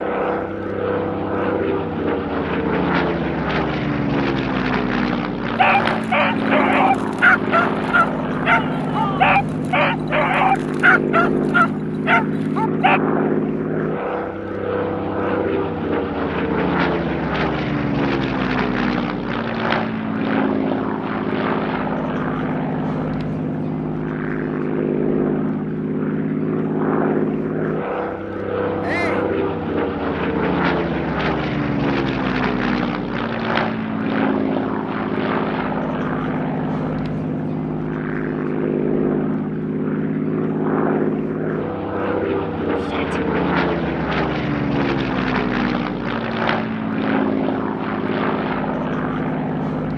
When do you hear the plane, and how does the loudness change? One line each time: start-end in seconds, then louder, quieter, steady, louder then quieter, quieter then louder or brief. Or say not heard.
0.0-49.9 steady.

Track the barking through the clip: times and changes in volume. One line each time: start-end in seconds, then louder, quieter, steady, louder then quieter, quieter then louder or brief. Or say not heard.
5.5-13.0 steady.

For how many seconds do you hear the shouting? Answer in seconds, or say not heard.
2 s.